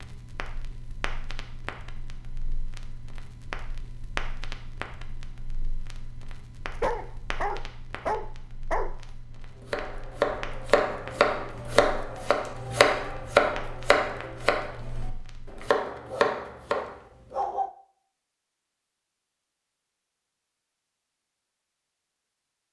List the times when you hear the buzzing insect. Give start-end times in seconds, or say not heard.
not heard.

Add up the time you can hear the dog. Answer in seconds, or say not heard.
4 s.